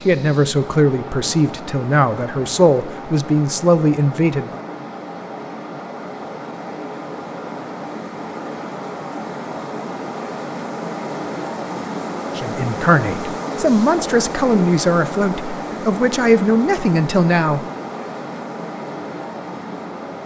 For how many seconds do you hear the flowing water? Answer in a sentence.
The flowing water can be heard for 20 seconds in total.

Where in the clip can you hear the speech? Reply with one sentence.
You can hear the speech from 0.1 to 4.6 s and from 12.3 to 17.6 s.